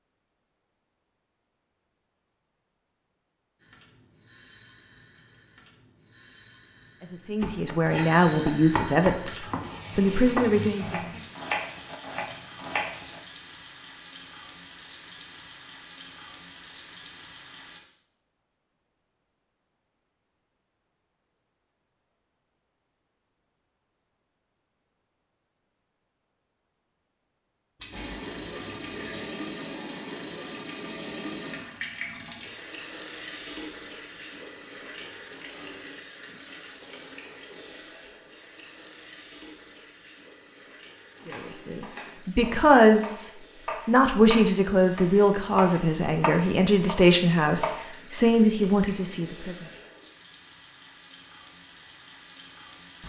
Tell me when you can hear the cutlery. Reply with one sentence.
You can hear the cutlery from 27.8 to 29.3 s.